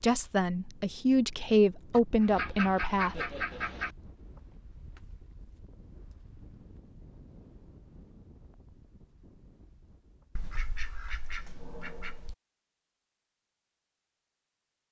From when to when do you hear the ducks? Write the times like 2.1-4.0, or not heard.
1.9-3.9, 10.3-12.3.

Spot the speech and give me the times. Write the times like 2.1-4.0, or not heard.
0.0-3.3.